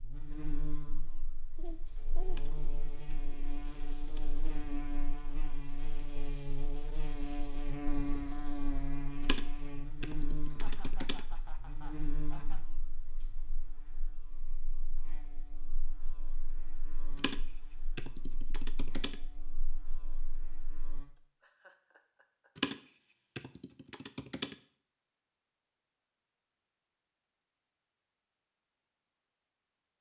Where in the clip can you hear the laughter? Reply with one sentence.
You can hear the laughter from 1.6 to 2.5 s, from 10.4 to 12.6 s and from 21.1 to 22.5 s.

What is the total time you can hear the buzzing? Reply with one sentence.
The buzzing can be heard for 21 seconds in total.